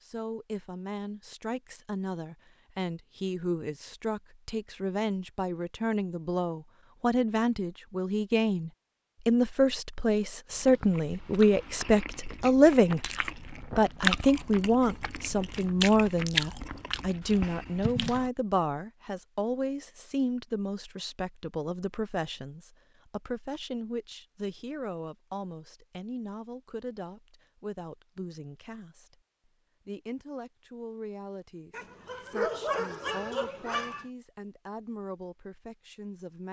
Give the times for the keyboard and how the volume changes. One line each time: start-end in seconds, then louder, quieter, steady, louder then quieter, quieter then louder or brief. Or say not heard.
not heard.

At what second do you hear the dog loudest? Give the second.
33 s.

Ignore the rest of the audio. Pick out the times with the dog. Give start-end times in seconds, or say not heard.
31.7-34.0.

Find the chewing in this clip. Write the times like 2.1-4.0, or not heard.
10.5-18.3.